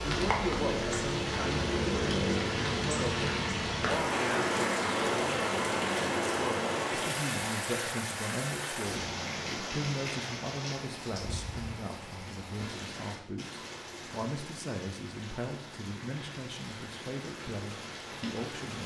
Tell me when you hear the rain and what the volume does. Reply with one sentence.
The rain can be heard from 0.0 to 18.8 s, getting quieter.